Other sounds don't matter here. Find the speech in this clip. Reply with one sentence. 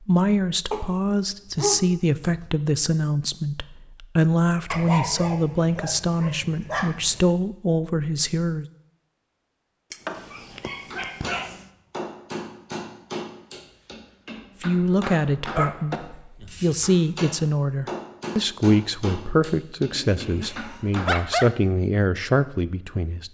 The speech can be heard from 0.1 to 8.7 s and from 14.6 to 23.2 s.